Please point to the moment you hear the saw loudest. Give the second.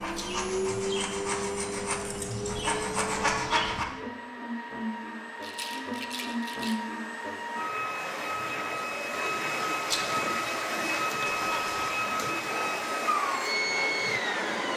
3 s.